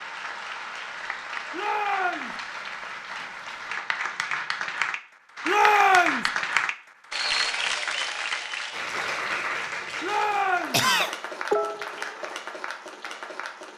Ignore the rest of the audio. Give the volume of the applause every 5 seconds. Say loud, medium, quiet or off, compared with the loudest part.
medium, loud, medium.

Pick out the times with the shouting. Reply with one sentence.
The shouting can be heard from 1.5 to 2.4 s, from 5.5 to 6.3 s and from 10.0 to 10.8 s.